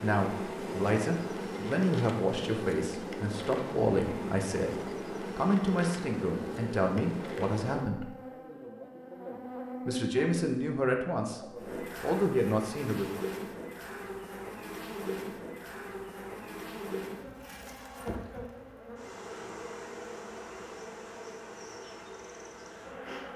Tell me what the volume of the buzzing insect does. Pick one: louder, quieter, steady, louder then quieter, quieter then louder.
quieter.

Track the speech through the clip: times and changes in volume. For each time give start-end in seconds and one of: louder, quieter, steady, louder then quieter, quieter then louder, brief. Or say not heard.
0.0-8.2 steady
9.8-11.4 brief
12.0-13.1 brief.